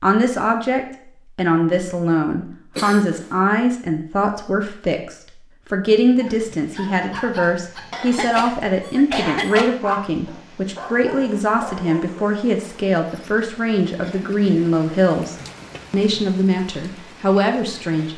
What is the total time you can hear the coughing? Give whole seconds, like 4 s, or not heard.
3 s.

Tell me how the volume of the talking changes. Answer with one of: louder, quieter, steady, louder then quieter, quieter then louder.
steady.